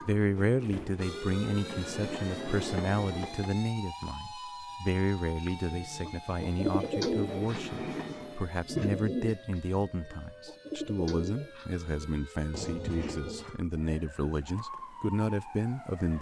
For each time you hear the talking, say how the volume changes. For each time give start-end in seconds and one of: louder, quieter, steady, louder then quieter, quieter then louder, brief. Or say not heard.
0.0-16.1 steady.